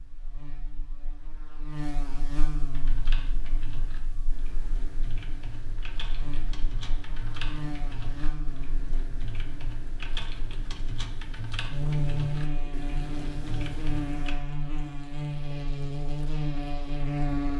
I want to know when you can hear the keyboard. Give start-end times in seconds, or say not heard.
2.7-14.4.